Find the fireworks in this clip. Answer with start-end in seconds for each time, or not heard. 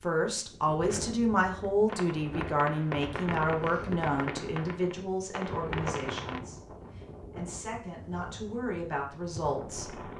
1.9-6.5.